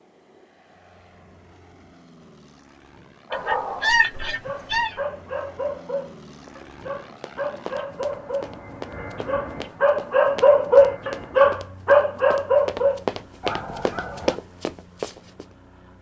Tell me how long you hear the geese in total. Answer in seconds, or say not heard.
2 s.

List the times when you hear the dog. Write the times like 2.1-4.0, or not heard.
3.3-14.4.